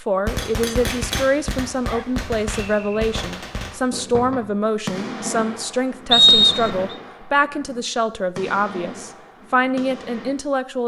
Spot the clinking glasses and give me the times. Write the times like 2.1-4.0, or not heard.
0.3-1.2.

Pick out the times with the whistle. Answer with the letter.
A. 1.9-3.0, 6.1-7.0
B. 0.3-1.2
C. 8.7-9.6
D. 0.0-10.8
A.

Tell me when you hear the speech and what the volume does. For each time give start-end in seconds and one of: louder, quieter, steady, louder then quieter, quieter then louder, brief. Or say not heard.
0.0-10.8 steady.